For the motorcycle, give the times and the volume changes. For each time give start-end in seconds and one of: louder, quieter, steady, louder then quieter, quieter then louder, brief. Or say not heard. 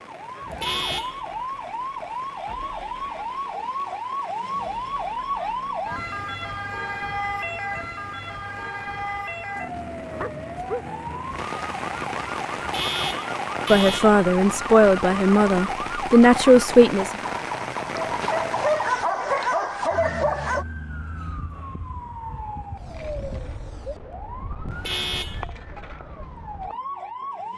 not heard.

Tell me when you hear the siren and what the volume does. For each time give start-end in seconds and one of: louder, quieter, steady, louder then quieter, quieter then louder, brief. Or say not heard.
0.0-27.5 quieter.